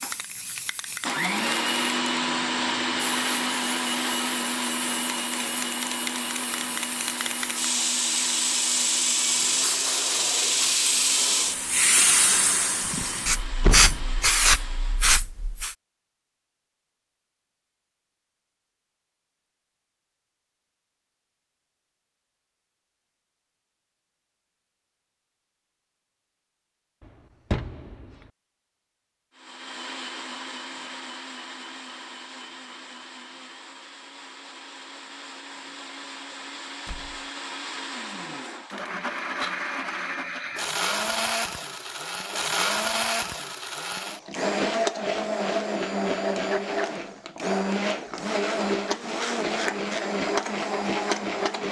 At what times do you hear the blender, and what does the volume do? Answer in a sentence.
You can hear the blender from 0.0 to 15.2 s, getting quieter; and from 29.4 to 51.6 s, getting louder.